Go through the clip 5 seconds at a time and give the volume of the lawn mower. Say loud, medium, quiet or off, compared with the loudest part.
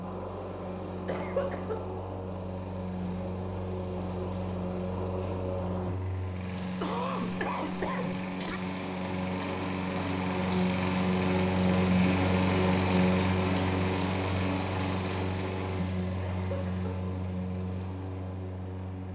medium, medium, loud, medium.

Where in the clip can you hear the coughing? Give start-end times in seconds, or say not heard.
1.1-1.8, 6.6-8.6, 16.3-16.9.